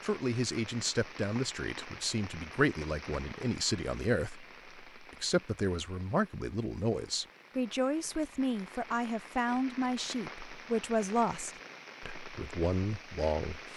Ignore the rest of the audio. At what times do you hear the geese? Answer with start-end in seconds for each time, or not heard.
not heard.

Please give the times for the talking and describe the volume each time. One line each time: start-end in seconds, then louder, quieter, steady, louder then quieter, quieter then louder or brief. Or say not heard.
0.0-13.7 steady.